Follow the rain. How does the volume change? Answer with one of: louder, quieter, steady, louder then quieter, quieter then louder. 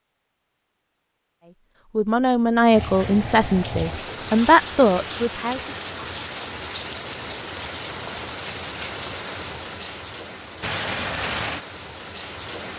steady.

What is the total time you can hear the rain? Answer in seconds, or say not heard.
10 s.